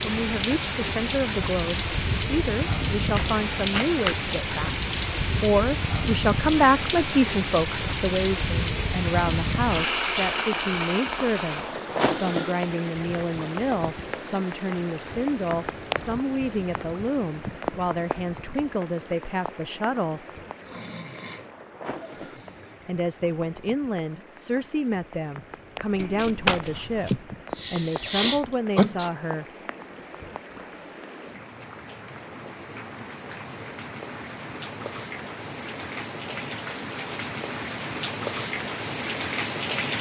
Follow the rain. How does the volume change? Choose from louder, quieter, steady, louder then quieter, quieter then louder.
quieter then louder.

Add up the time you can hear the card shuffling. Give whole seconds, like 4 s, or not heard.
2 s.